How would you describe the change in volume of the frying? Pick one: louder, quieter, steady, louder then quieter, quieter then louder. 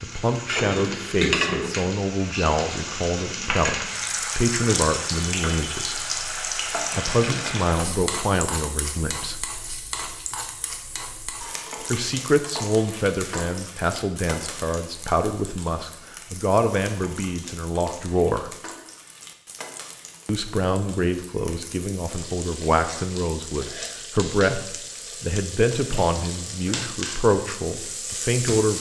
quieter then louder.